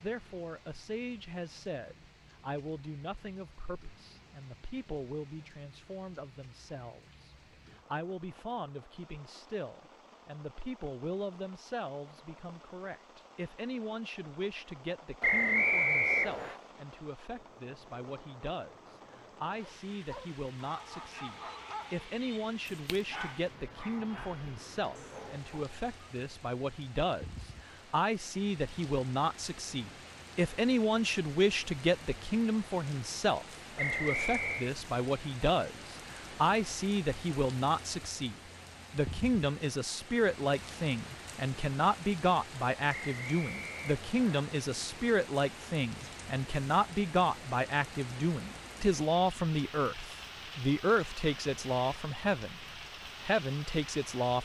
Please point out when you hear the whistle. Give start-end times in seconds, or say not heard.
15.2-16.6, 33.8-34.7, 42.9-44.5.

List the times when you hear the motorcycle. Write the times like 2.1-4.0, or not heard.
not heard.